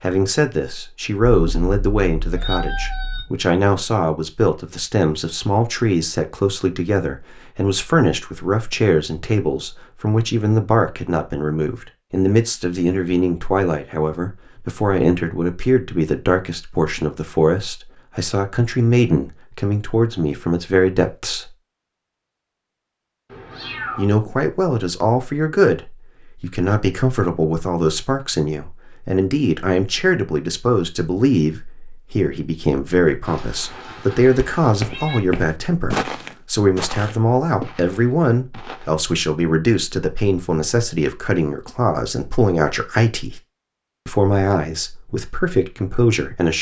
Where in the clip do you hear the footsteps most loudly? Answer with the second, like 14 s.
36 s.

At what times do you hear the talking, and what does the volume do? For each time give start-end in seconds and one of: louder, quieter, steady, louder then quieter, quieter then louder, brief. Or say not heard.
0.0-21.5 steady
23.9-43.4 steady
44.0-46.5 brief.